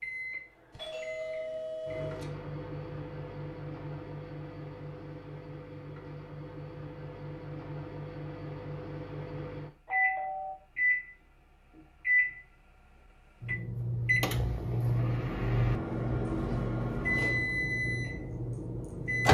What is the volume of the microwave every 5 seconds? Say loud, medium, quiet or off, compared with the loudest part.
medium, medium, loud, loud.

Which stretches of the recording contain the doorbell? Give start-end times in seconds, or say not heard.
0.7-2.2, 9.8-10.6.